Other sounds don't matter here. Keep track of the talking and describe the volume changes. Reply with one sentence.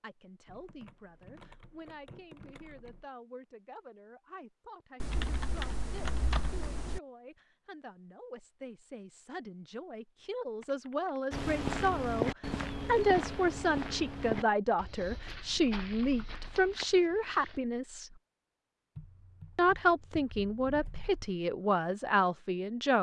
The loudness of the talking goes up.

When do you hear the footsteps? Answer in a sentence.
The footsteps can be heard from 11.3 to 17.6 s.